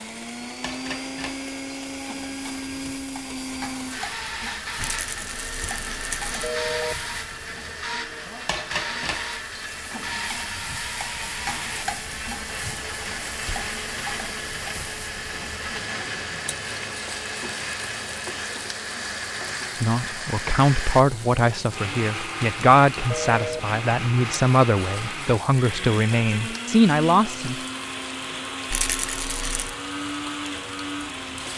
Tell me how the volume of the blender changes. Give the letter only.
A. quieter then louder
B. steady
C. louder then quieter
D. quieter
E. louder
B.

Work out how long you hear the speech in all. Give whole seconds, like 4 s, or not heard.
8 s.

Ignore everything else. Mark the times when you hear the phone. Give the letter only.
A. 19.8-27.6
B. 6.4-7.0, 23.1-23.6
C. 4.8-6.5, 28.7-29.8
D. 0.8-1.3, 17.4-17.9
B.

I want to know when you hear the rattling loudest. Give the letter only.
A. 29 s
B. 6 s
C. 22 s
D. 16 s
A.